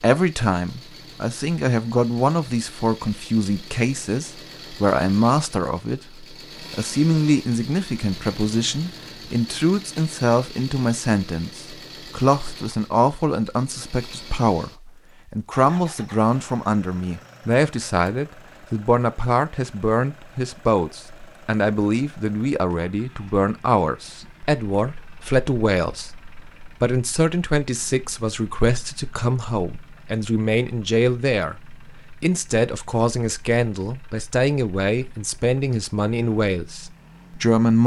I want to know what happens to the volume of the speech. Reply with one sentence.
The loudness of the speech stays about the same.